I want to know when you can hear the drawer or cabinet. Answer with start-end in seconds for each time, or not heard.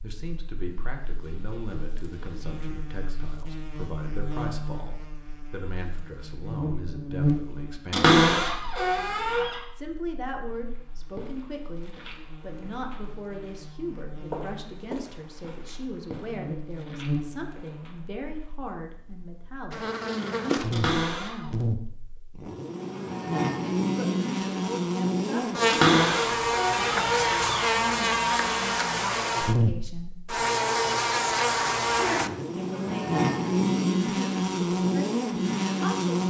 7.9-9.6, 20.7-21.5, 25.6-27.7.